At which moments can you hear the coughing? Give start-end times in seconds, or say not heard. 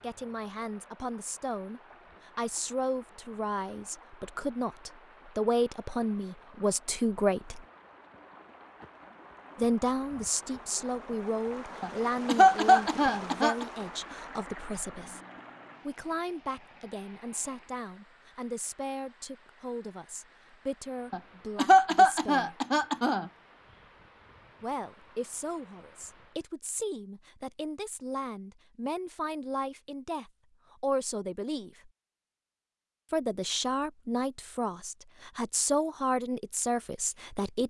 11.8-13.7, 21.1-23.2.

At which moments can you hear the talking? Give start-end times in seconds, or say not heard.
0.0-7.6, 9.6-15.2, 15.8-22.6, 24.6-31.9, 33.1-37.6.